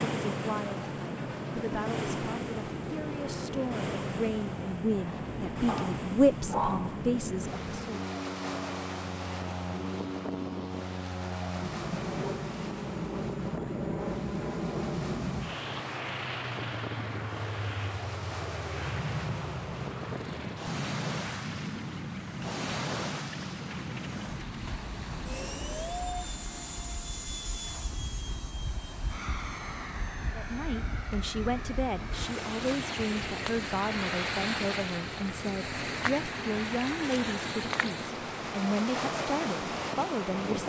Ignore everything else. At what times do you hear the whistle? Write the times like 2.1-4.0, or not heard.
not heard.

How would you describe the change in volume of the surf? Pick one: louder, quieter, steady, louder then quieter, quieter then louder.
quieter then louder.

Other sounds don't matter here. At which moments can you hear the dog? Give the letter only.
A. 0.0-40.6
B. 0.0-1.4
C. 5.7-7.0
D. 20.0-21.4
C.